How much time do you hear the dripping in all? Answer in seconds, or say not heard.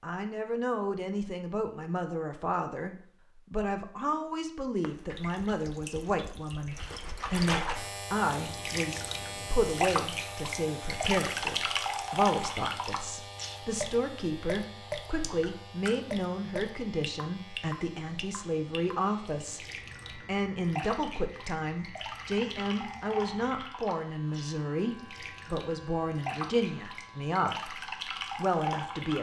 24 s.